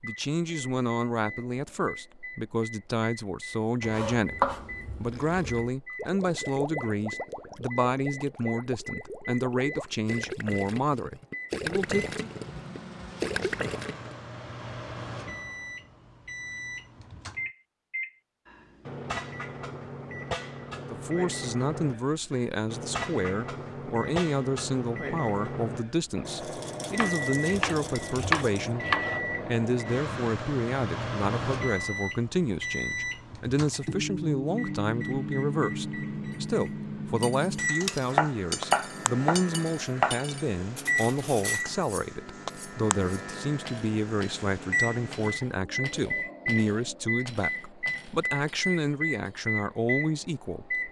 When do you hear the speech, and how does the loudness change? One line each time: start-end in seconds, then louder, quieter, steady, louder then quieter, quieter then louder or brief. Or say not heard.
0.0-12.3 steady
20.9-50.8 steady.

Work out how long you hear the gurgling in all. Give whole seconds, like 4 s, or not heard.
9 s.